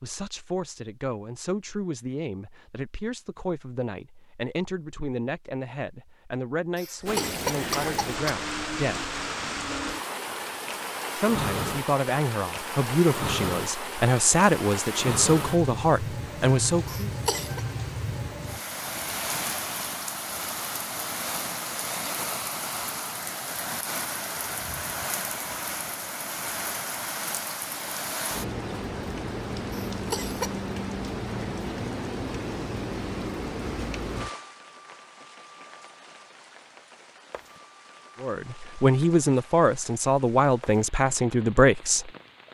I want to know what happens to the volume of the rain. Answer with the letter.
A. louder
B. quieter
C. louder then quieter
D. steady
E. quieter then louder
B.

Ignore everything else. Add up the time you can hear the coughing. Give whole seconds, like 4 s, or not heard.
3 s.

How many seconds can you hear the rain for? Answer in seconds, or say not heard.
35 s.